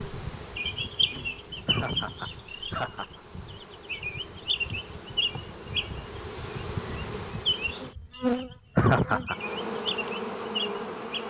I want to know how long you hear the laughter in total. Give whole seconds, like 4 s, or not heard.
2 s.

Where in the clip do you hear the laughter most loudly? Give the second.
9 s.